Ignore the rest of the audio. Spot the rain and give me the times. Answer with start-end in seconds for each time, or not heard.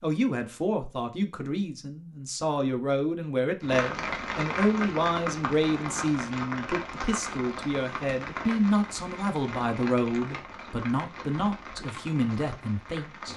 3.6-13.3.